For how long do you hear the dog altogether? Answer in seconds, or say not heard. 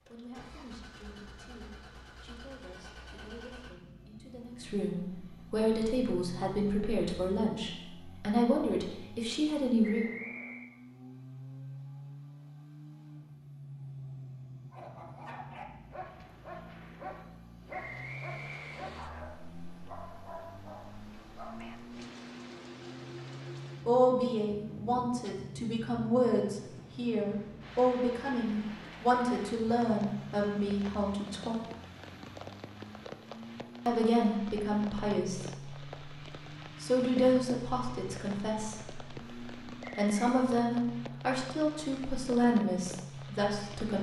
7 s.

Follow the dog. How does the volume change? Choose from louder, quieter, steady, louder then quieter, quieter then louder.
steady.